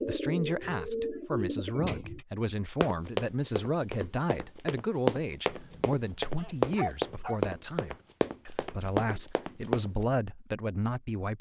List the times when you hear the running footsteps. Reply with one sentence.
You can hear the running footsteps from 2.8 to 10.1 s.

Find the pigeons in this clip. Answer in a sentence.
You can hear the pigeons from 0.0 to 2.2 s.